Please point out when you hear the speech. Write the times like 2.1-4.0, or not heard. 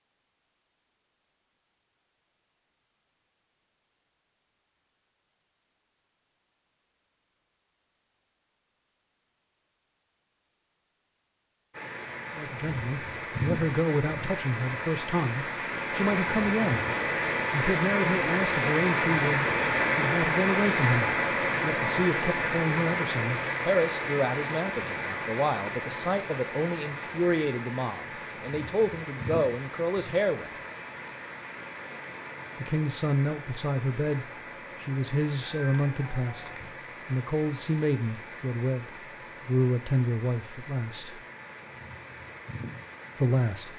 12.3-16.9, 17.5-30.5, 32.5-41.2, 43.1-43.7.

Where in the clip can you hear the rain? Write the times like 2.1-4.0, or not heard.
11.7-43.7.